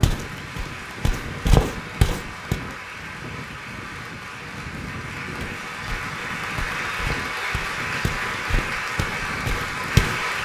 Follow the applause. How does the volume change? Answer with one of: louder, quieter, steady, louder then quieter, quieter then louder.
louder.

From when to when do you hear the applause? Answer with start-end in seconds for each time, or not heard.
0.0-10.3.